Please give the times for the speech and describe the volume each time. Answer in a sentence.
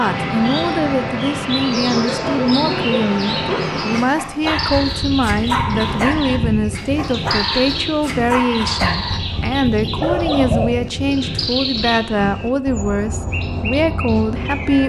The speech can be heard from 0.0 to 14.8 s, at a steady volume.